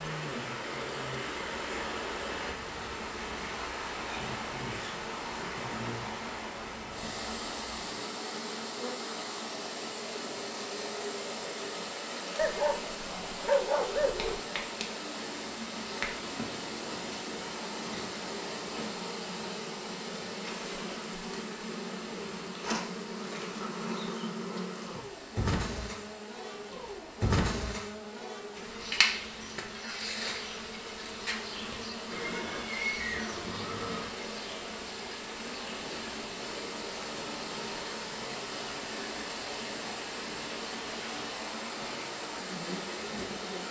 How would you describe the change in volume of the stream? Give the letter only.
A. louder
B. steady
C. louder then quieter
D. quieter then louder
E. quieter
D.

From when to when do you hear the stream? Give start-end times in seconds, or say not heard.
0.0-43.6.